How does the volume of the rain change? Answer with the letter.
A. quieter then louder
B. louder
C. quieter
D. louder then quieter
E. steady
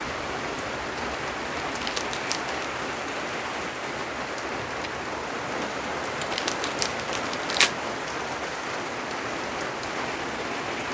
E.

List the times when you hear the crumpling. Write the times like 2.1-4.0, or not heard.
1.8-2.5, 6.3-7.8.